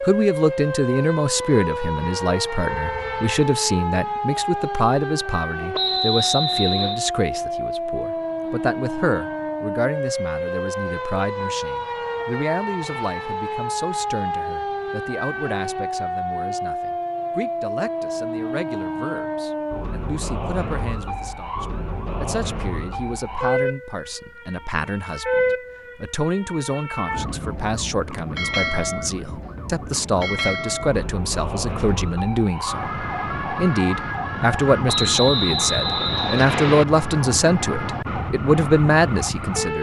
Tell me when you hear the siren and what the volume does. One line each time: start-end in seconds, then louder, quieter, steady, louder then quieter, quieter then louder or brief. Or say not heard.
0.0-39.7 steady.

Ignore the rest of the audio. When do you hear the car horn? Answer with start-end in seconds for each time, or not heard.
2.6-3.5.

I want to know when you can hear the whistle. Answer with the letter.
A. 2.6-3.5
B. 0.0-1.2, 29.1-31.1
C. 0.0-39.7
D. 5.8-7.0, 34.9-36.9
D.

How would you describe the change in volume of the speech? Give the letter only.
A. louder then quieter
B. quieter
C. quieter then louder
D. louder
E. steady
C.